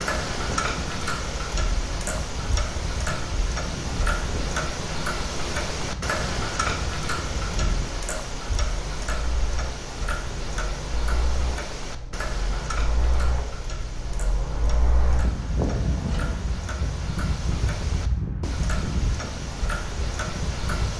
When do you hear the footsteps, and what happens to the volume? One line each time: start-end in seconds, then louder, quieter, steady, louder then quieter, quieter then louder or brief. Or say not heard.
not heard.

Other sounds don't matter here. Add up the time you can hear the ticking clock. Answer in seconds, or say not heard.
21 s.